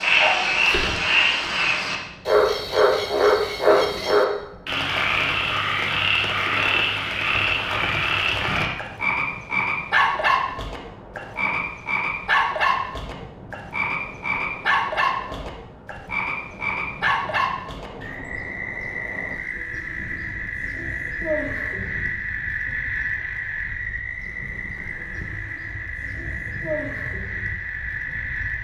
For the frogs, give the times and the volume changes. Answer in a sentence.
The frogs can be heard from 0.0 to 28.5 s, getting quieter.